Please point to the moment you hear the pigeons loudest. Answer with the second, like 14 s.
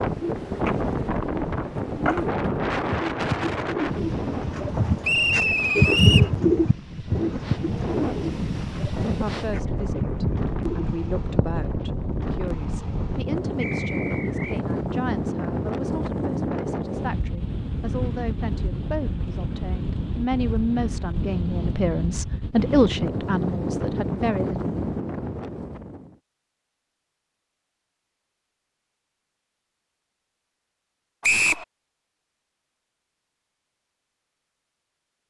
6 s.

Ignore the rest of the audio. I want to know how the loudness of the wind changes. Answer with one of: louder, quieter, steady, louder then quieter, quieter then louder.
steady.